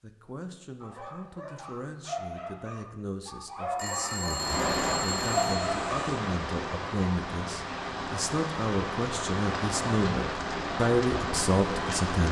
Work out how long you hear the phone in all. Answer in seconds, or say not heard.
2 s.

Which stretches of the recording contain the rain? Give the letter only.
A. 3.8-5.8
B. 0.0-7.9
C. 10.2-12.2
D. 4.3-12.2
D.